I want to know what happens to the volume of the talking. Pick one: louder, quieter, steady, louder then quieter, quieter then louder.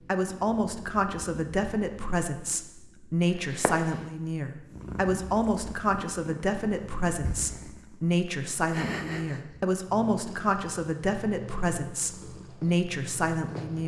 steady.